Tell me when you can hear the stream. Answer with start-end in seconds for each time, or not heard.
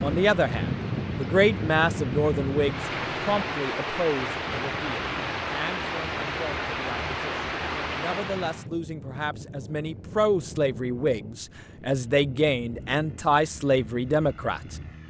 0.0-8.7.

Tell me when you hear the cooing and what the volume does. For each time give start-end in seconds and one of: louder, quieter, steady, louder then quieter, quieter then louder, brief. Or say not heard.
not heard.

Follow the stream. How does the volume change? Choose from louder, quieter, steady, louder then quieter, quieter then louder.
louder.